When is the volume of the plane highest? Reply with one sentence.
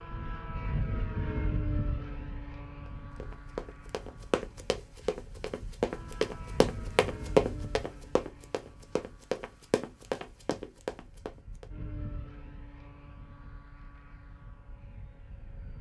The loudest moment of the plane is at 1 second.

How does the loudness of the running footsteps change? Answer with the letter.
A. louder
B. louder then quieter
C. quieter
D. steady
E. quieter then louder
B.